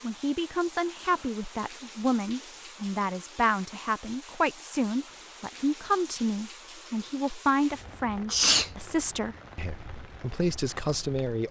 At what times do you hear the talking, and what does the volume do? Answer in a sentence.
The talking can be heard from 0.0 to 11.4 s, at a steady volume.